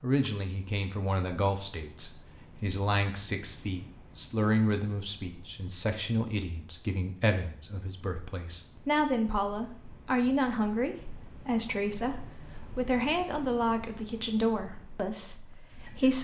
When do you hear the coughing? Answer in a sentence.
The coughing can't be heard in this clip.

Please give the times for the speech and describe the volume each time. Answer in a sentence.
The speech can be heard from 0.0 to 16.1 s, at a steady volume.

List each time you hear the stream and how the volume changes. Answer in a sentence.
The stream can't be heard in this clip.